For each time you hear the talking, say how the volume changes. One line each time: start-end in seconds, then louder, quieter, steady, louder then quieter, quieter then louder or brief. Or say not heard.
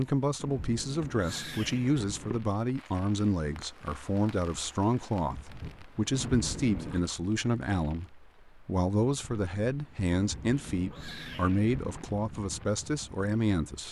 0.0-13.8 steady.